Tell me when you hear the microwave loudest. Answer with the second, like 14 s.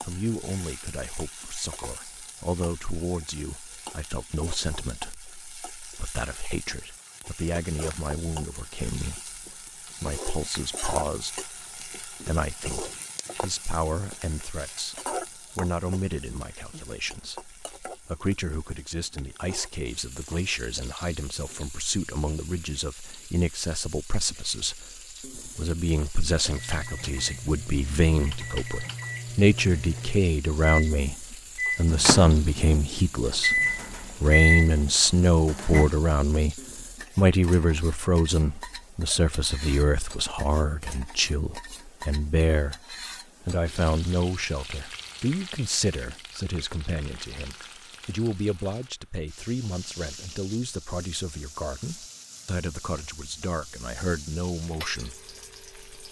34 s.